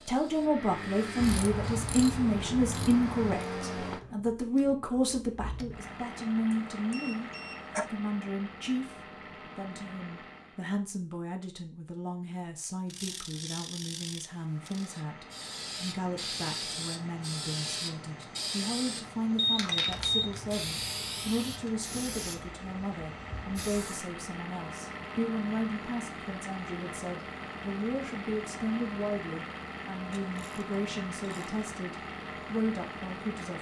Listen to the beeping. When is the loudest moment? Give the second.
20 s.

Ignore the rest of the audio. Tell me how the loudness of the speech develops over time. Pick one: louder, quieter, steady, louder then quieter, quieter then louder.
quieter.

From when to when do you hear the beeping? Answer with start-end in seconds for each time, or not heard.
6.5-7.8, 19.4-20.3.